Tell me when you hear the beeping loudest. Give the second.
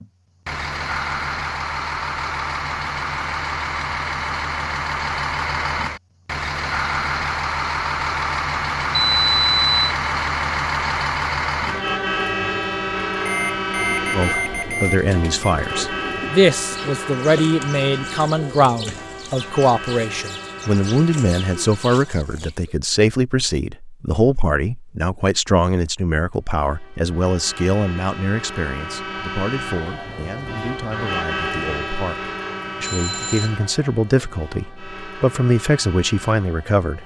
9 s.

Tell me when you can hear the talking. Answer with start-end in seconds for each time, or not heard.
14.1-37.0.